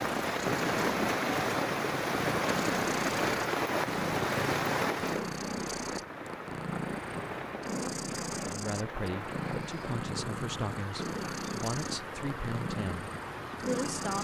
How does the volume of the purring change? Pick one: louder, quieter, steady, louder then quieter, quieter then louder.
steady.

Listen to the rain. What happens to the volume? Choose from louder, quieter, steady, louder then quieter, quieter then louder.
quieter.